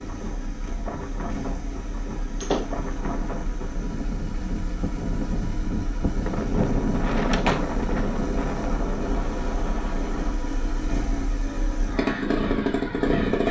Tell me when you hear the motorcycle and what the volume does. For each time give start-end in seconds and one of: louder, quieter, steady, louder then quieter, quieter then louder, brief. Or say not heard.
0.0-13.4 louder.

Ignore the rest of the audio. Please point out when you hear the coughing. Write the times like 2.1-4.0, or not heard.
not heard.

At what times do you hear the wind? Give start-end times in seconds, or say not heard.
0.0-10.3.